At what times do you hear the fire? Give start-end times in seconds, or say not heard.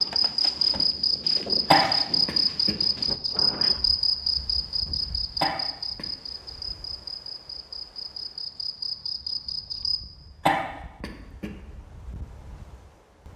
not heard.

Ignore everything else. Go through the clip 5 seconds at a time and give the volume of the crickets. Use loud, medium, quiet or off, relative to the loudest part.
loud, medium, off.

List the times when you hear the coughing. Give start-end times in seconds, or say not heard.
1.7-2.8, 5.4-6.0, 10.4-11.5.